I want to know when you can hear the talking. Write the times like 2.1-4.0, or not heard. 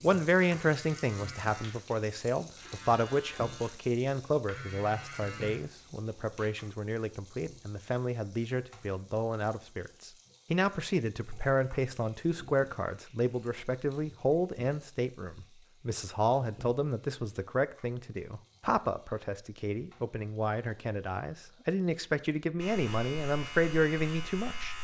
0.0-24.7.